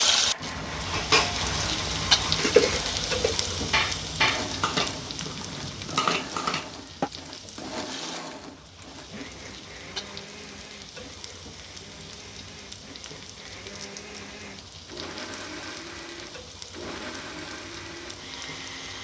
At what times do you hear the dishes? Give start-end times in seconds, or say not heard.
0.8-7.1.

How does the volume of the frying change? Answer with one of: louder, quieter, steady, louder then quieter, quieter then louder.
quieter.